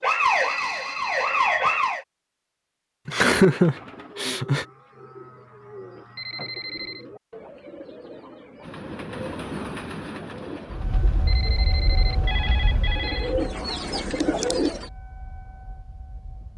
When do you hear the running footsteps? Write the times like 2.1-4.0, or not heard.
not heard.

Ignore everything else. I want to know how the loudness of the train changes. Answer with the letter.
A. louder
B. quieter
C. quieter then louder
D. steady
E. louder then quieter
B.